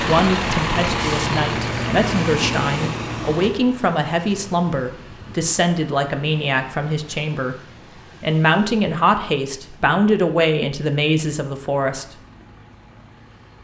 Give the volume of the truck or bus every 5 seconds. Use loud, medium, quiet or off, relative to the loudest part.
loud, quiet, quiet.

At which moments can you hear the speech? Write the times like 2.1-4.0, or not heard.
0.1-12.1.